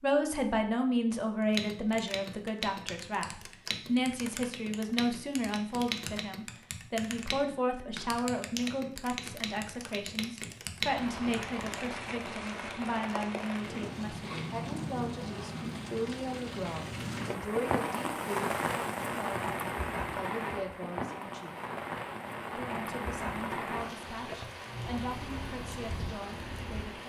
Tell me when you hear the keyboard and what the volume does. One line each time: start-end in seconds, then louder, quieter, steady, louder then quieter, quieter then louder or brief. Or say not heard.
1.4-11.8 steady.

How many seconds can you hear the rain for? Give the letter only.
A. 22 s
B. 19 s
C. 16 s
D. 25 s
C.